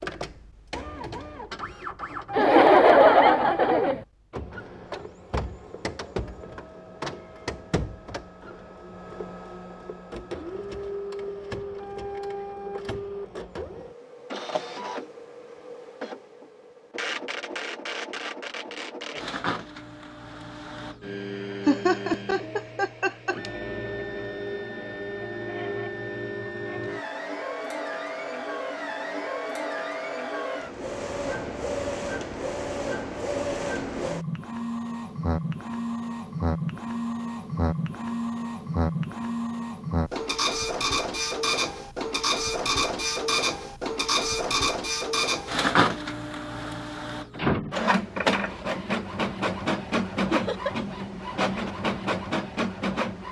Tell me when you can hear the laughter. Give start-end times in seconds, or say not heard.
2.3-4.0, 21.6-23.4, 50.3-50.8.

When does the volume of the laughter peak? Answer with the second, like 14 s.
3 s.